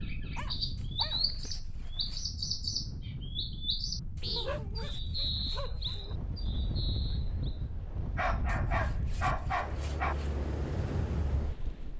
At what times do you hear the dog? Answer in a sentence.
You can hear the dog from 0.3 to 2.0 s, from 4.3 to 6.2 s and from 8.2 to 10.2 s.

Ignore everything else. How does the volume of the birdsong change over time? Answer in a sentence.
The loudness of the birdsong goes down.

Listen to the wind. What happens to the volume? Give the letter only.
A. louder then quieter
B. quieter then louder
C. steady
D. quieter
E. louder
E.